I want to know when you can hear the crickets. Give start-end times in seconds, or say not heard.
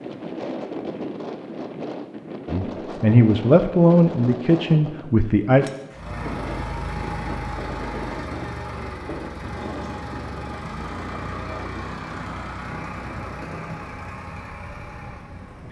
not heard.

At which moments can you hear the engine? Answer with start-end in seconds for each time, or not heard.
5.9-15.6.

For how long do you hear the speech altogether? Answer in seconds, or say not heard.
3 s.